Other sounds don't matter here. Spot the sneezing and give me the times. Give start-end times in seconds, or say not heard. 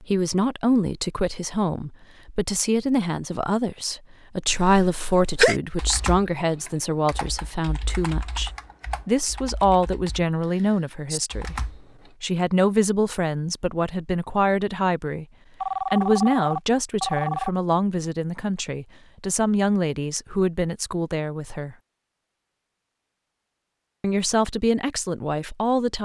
4.5-5.5.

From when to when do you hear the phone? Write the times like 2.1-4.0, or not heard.
15.6-17.5.